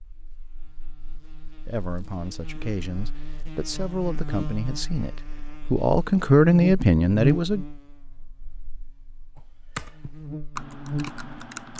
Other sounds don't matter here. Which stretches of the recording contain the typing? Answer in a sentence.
The typing can be heard from 9.3 to 11.7 s.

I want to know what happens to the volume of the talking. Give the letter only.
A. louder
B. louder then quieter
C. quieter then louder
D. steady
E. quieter
A.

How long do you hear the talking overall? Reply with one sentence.
The talking can be heard for 6 seconds in total.